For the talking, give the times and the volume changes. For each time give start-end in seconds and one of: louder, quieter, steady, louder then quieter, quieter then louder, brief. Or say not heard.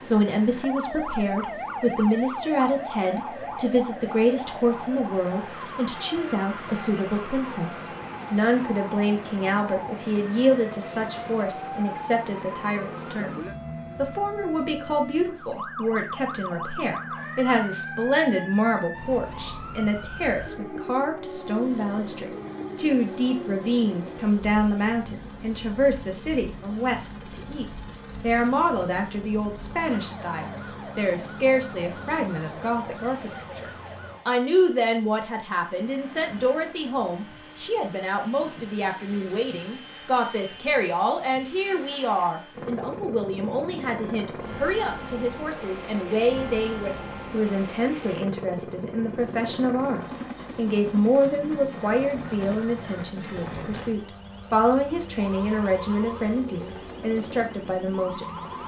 0.0-58.2 steady.